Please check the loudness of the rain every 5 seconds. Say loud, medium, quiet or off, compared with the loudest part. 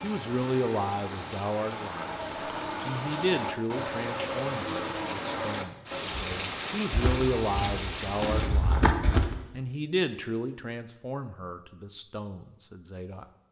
loud, loud, off.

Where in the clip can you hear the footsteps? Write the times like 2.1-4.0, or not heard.
6.9-9.3.